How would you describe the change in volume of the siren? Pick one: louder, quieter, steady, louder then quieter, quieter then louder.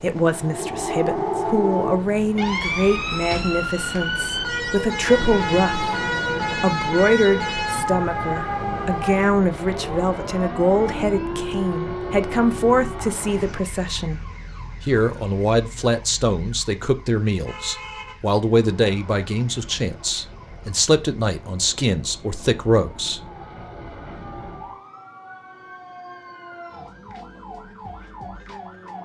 quieter.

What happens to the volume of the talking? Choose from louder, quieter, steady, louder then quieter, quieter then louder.
steady.